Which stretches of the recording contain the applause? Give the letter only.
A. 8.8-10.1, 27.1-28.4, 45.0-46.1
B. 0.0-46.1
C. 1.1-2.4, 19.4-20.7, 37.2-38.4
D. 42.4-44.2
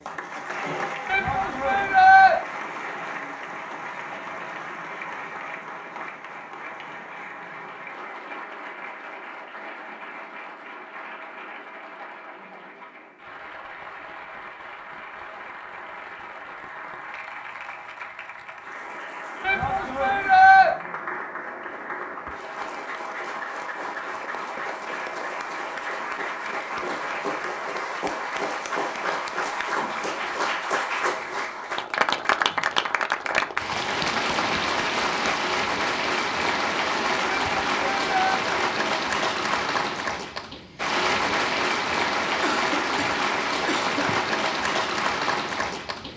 B.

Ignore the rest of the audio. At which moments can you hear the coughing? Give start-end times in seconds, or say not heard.
42.4-44.2.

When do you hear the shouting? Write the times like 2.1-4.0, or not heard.
1.1-2.4, 19.4-20.7, 37.2-38.4.